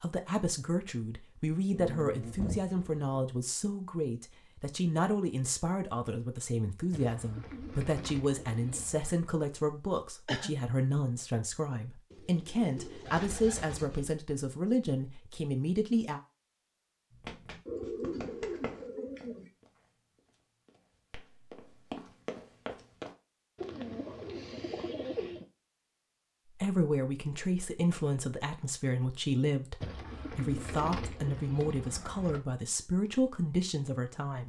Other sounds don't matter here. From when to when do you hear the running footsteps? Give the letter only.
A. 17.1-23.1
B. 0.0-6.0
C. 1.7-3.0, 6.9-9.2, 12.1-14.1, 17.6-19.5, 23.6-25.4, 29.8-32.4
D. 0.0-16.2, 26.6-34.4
A.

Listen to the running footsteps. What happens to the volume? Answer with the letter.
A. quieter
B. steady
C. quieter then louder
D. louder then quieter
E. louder
C.